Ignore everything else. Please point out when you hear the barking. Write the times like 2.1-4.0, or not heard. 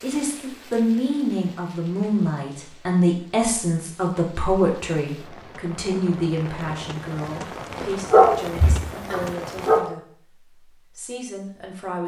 8.1-9.8.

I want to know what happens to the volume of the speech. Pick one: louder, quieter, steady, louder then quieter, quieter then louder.
quieter.